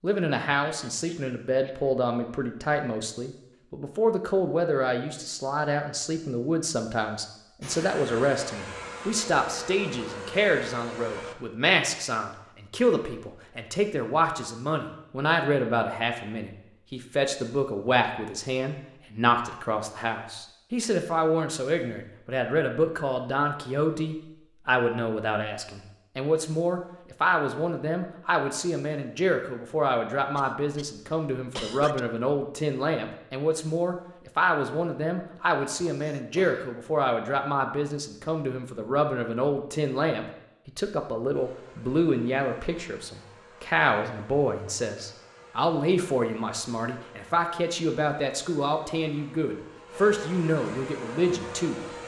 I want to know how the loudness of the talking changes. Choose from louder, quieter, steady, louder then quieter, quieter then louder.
steady.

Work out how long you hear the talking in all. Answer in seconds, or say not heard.
52 s.